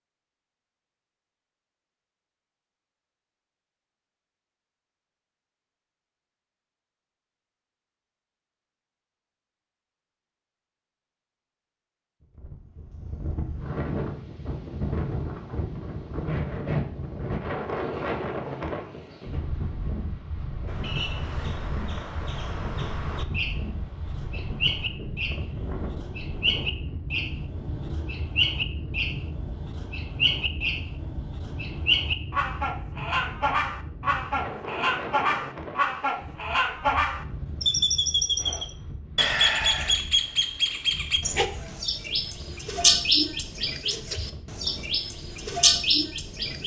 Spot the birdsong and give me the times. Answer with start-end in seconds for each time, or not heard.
20.6-46.6.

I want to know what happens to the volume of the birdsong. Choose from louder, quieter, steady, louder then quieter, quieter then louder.
louder.